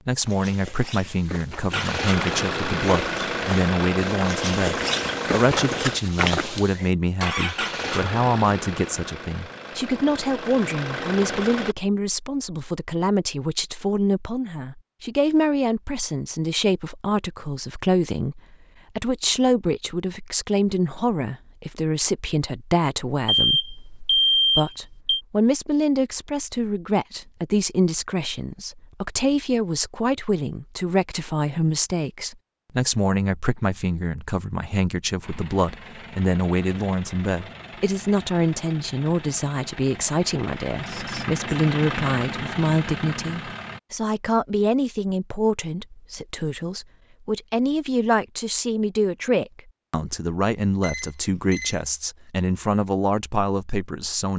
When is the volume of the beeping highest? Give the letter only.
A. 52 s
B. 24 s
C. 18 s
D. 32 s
B.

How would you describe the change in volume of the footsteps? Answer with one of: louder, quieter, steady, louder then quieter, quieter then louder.
louder.